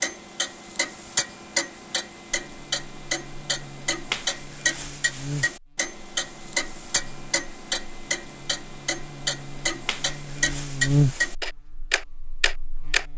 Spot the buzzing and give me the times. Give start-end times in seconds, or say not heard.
2.3-13.1.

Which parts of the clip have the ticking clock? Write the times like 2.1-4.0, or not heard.
0.0-13.1.